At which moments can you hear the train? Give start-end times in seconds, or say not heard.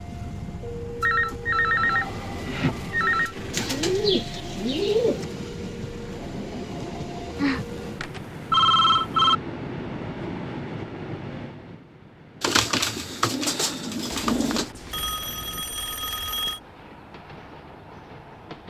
0.0-18.6.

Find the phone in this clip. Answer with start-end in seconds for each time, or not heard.
1.0-3.4, 7.3-9.3, 14.2-16.6.